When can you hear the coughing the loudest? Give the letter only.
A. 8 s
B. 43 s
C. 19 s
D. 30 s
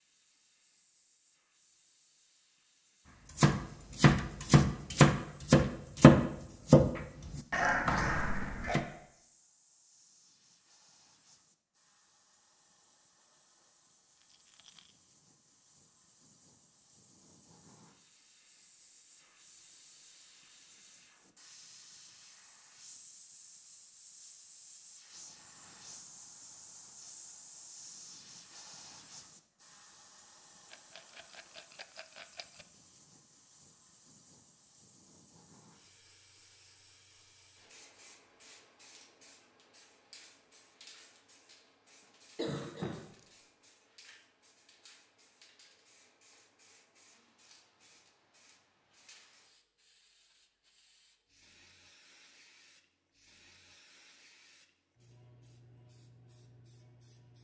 A.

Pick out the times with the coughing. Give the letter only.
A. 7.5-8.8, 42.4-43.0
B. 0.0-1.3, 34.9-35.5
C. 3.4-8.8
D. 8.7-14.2
A.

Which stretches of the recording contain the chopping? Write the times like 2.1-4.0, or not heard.
3.4-8.8.